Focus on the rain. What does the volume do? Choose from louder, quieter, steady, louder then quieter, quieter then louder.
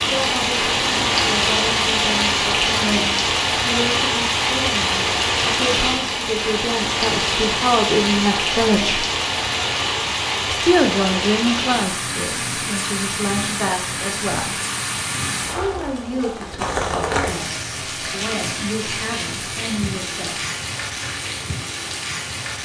quieter.